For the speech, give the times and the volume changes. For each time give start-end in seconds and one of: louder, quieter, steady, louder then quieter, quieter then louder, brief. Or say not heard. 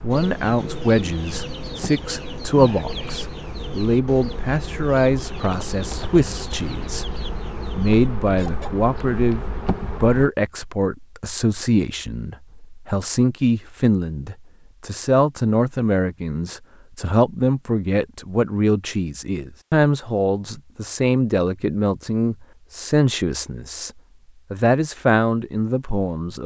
0.0-23.9 steady
24.5-26.4 brief.